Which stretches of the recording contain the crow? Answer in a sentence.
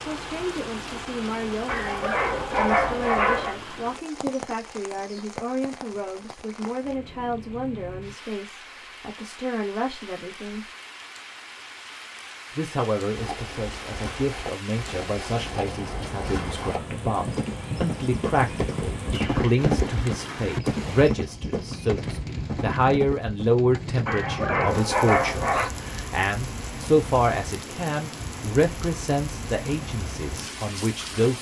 You can't hear the crow here.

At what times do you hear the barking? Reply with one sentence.
The barking can be heard from 1.6 to 3.5 s and from 24.1 to 25.7 s.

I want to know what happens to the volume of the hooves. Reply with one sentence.
The loudness of the hooves goes up, then down.